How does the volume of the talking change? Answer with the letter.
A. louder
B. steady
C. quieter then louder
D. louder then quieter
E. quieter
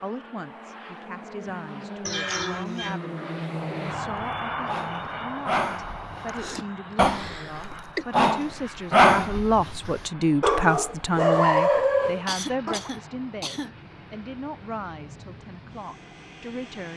D.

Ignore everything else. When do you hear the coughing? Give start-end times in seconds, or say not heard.
2.0-3.0, 6.2-8.1, 12.2-13.8.